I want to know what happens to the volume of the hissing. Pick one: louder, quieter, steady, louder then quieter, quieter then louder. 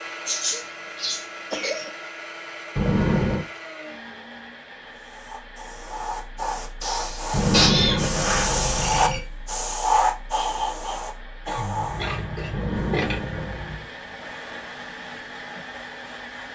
louder then quieter.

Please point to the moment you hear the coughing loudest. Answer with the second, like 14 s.
8 s.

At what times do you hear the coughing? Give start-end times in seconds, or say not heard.
0.2-1.9, 6.8-8.1, 11.4-13.2.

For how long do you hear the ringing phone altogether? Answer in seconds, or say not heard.
4 s.